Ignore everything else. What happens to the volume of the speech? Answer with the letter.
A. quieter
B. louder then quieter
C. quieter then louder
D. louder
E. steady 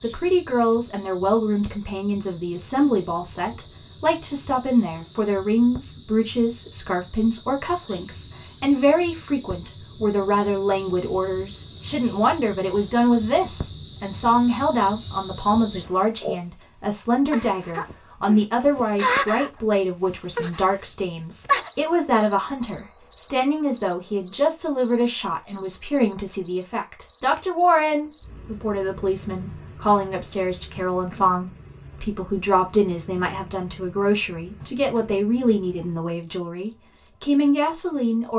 E.